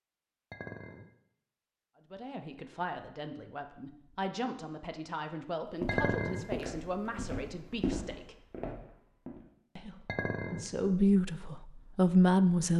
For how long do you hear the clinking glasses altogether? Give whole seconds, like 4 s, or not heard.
2 s.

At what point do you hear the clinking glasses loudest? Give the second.
6 s.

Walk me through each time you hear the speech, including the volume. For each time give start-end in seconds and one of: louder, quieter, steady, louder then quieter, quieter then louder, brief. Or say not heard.
2.1-8.3 steady
9.8-12.7 brief.